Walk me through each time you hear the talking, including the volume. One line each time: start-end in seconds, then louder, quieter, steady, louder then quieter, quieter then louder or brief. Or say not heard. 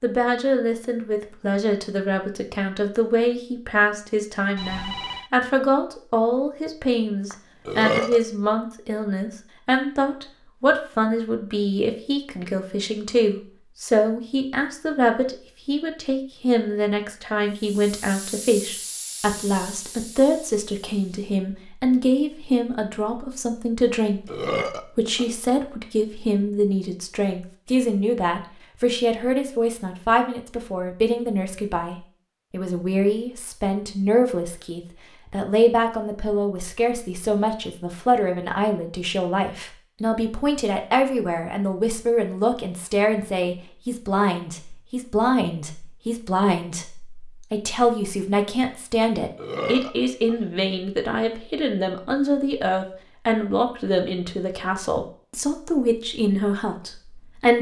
0.0-57.5 steady.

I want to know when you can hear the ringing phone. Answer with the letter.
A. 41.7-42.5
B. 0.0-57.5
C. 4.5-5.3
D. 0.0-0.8
C.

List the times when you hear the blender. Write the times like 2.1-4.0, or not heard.
not heard.